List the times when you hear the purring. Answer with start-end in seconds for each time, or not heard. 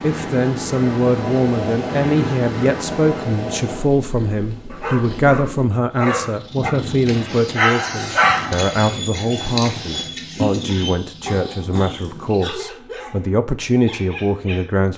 0.0-12.6.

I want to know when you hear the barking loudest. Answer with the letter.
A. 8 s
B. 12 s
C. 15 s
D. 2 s
A.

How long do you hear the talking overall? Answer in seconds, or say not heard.
15 s.